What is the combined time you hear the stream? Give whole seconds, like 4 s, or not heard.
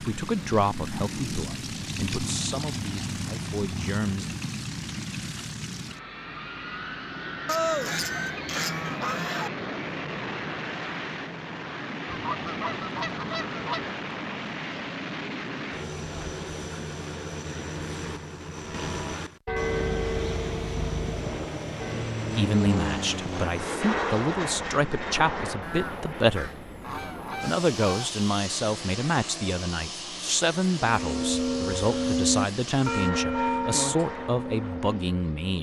not heard.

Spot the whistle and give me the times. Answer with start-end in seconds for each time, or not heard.
not heard.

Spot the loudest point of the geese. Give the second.
8 s.